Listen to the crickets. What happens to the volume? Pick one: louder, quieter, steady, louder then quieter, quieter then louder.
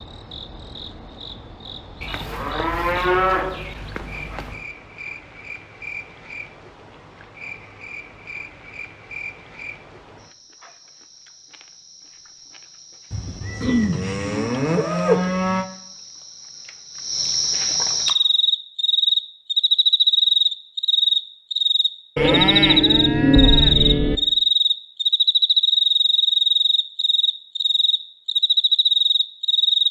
louder.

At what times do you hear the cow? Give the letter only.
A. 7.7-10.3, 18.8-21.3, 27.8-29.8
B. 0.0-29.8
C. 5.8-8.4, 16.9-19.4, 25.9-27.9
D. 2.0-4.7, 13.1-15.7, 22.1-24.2
D.